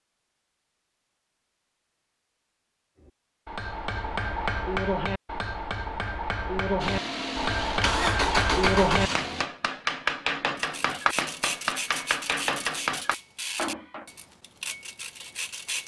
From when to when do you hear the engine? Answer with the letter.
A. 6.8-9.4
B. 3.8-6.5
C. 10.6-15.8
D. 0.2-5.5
A.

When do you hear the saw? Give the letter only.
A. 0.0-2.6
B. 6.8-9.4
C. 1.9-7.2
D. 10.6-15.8
D.